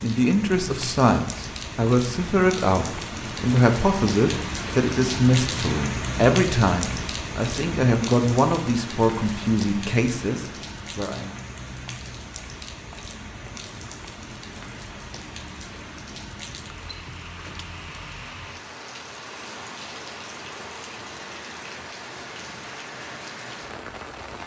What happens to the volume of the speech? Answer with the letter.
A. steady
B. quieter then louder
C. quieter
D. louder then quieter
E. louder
A.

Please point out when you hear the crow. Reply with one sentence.
The crow can't be heard in this clip.